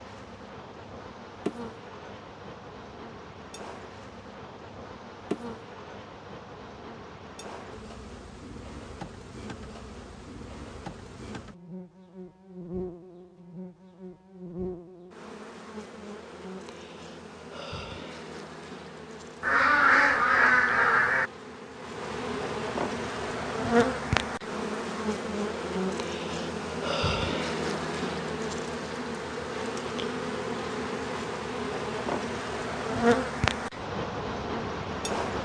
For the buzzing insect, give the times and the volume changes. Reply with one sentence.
You can hear the buzzing insect from 0.0 to 35.4 s, getting louder.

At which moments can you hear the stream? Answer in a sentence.
The stream can't be heard in this clip.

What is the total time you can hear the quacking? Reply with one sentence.
You can hear the quacking for 2 seconds altogether.